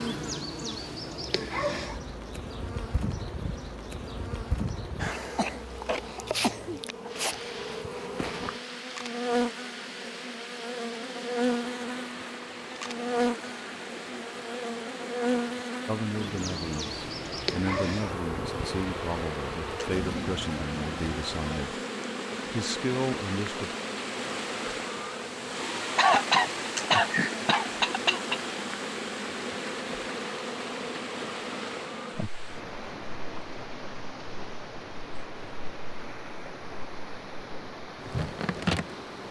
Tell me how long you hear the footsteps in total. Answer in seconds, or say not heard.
not heard.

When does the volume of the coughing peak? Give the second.
26 s.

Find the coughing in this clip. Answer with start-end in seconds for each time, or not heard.
5.2-6.8, 25.9-28.4.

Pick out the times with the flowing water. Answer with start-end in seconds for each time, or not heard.
7.0-39.2.